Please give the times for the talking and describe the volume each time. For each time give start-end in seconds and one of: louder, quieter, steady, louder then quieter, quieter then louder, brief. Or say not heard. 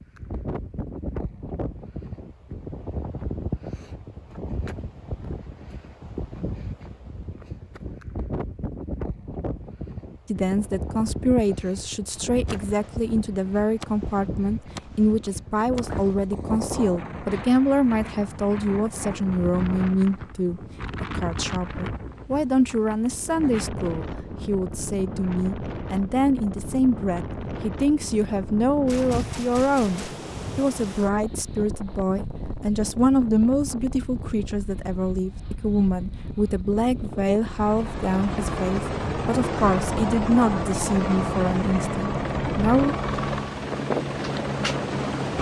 10.3-43.0 steady.